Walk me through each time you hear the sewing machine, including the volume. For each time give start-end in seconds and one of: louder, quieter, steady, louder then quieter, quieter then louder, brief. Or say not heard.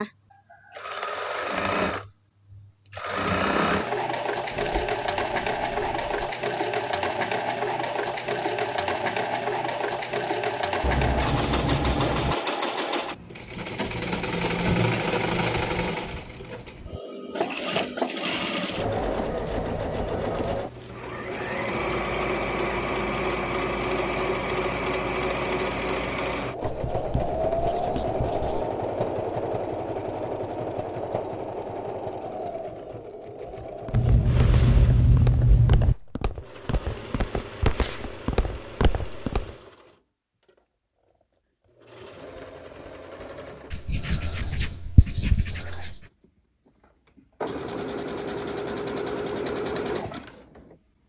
0.0-50.8 quieter.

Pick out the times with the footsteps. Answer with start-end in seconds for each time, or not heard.
33.6-39.5.